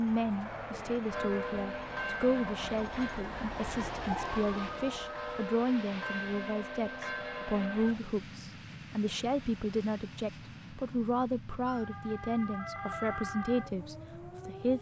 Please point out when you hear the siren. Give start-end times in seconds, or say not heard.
0.0-5.5, 11.7-14.7.